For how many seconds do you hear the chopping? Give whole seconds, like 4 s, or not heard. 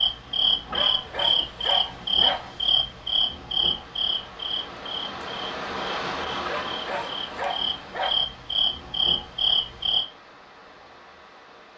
not heard.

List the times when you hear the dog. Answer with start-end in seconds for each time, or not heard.
0.7-2.5, 6.5-8.2.